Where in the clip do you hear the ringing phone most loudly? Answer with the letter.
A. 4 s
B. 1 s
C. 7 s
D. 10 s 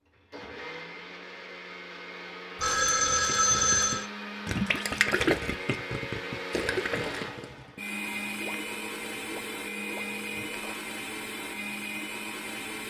A.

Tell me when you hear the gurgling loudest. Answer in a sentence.
The loudest moment of the gurgling is at 5 seconds.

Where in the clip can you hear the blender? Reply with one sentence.
You can hear the blender from 0.1 to 12.8 s.